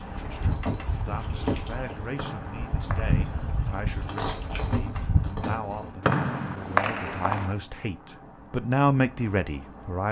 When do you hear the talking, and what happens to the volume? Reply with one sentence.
You can hear the talking from 0.0 to 10.0 s, getting louder.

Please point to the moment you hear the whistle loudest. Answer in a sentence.
The loudest moment of the whistle is at 7 seconds.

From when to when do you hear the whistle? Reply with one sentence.
The whistle can be heard from 2.1 to 3.2 s and from 6.0 to 7.5 s.